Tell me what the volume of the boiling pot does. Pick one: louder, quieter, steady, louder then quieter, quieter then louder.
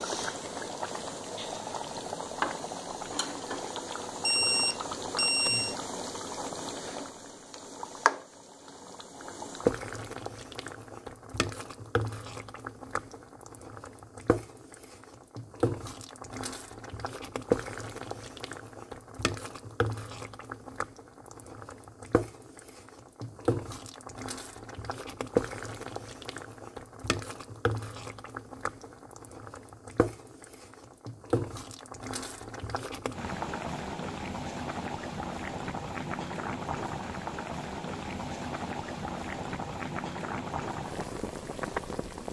steady.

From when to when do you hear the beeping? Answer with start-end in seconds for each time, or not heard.
4.2-5.8.